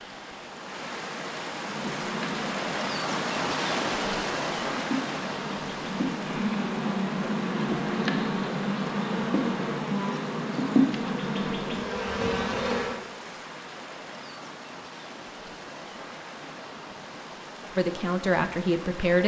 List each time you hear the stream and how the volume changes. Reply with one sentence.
You can hear the stream from 0.0 to 19.2 s, getting quieter.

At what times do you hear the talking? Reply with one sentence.
You can hear the talking from 17.8 to 19.2 s.